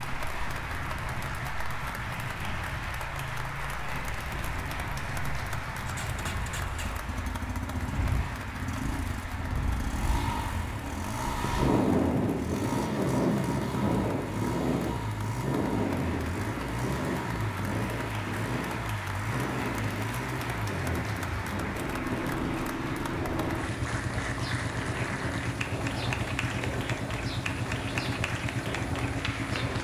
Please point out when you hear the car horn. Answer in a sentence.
You can't hear the car horn here.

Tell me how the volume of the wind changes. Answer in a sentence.
The volume of the wind goes up, then down.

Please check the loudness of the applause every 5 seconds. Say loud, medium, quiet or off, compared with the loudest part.
loud, loud, medium, loud, loud, loud.